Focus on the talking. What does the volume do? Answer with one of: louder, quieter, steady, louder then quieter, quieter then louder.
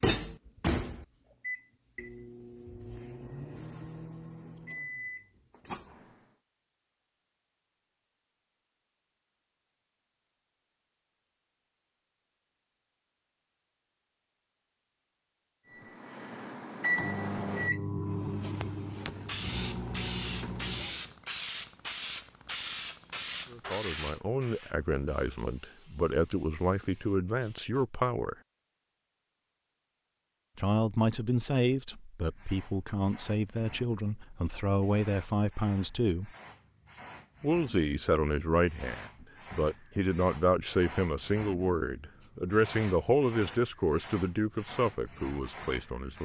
steady.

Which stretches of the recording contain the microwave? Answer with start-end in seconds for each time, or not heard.
0.0-6.2, 15.7-21.1.